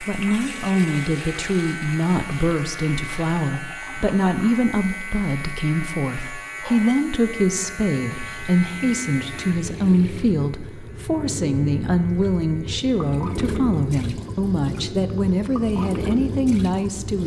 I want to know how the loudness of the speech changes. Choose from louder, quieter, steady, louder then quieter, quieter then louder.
steady.